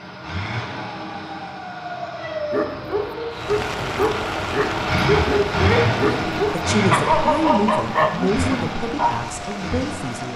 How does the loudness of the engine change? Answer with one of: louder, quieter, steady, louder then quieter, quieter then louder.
louder then quieter.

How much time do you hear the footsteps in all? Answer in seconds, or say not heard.
not heard.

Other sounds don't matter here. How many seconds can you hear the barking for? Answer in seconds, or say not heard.
7 s.